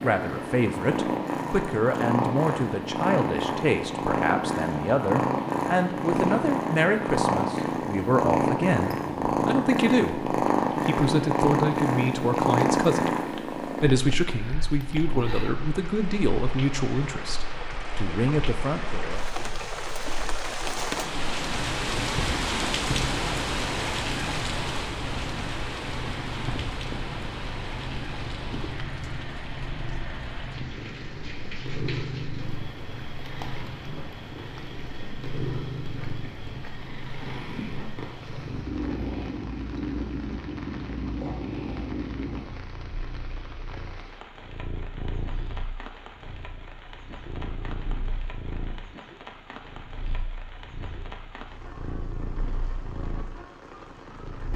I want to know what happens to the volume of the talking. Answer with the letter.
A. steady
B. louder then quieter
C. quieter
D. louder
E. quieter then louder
A.